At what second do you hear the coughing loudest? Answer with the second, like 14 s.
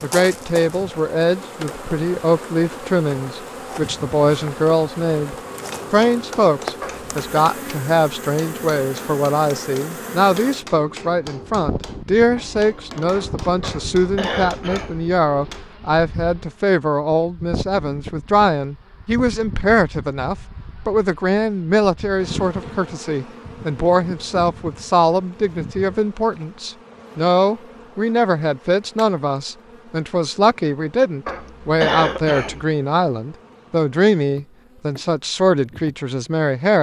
32 s.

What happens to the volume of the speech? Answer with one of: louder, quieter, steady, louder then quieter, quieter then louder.
steady.